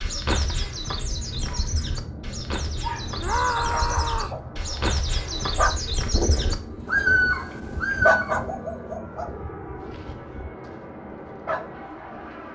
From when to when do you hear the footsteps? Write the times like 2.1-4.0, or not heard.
not heard.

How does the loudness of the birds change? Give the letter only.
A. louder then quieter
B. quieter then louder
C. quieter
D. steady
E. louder
E.